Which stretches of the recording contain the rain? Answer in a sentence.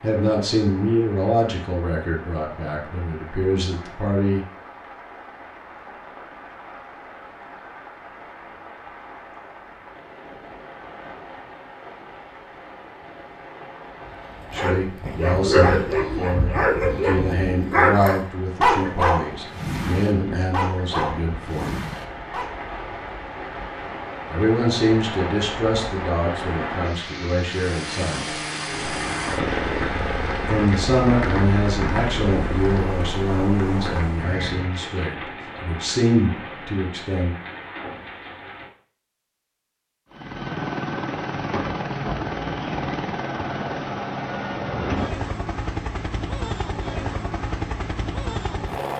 The rain can be heard from 0.0 to 38.7 s.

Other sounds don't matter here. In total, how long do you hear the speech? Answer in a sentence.
You can hear the speech for 23 seconds altogether.